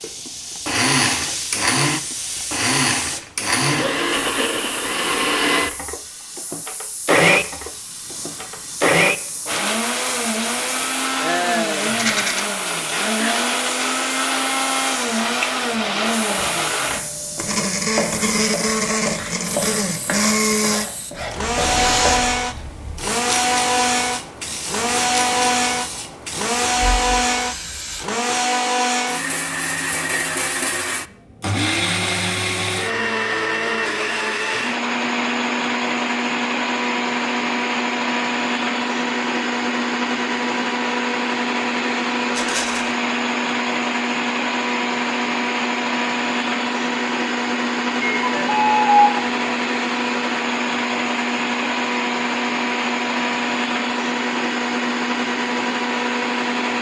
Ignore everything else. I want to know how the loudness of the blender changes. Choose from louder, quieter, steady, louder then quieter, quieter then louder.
steady.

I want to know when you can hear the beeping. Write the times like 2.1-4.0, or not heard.
48.0-49.3.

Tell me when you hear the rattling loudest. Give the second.
12 s.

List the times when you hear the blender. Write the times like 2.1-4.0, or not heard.
0.0-56.7.